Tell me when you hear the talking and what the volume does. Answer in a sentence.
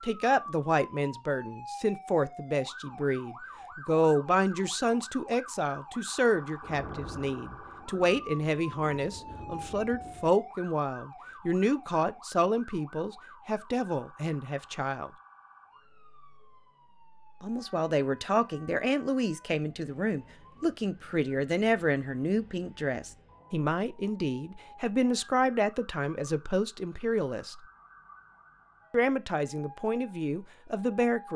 The talking can be heard from 0.0 to 15.1 s, at a steady volume; from 17.4 to 27.6 s, at a steady volume; and briefly from 28.9 to 31.3 s.